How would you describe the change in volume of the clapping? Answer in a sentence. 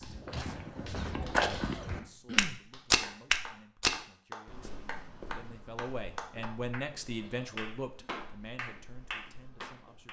The loudness of the clapping goes up.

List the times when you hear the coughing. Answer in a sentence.
You can hear the coughing from 1.4 to 2.6 s and from 7.1 to 8.1 s.